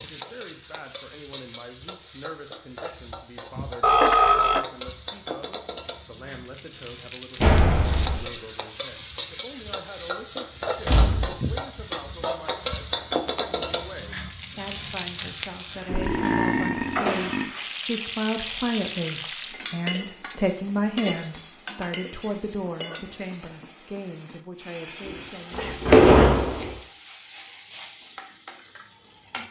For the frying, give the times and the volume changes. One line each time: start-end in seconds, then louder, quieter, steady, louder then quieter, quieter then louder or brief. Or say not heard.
0.0-29.4 louder then quieter.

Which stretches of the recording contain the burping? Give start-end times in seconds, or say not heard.
3.8-4.7, 15.8-17.5.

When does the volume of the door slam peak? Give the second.
26 s.